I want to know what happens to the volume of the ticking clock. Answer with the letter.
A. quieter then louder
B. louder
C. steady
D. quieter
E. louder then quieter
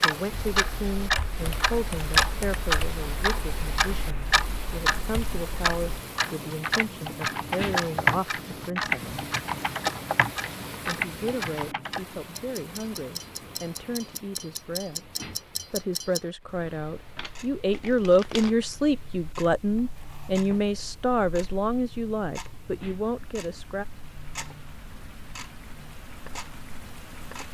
D.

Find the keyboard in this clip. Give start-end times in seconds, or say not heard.
0.2-12.0.